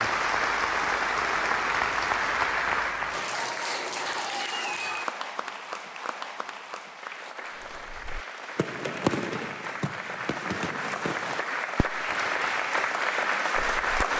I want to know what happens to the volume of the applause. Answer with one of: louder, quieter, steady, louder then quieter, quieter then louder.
quieter then louder.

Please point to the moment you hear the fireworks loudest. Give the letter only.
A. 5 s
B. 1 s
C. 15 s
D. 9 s
D.